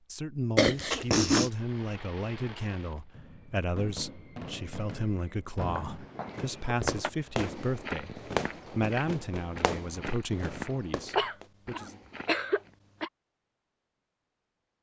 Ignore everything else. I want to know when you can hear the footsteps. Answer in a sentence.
You can hear the footsteps from 5.6 to 12.8 s.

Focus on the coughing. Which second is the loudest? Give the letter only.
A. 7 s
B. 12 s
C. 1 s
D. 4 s
C.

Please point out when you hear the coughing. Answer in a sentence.
You can hear the coughing from 0.6 to 1.5 s, from 6.2 to 7.1 s and from 11.2 to 13.1 s.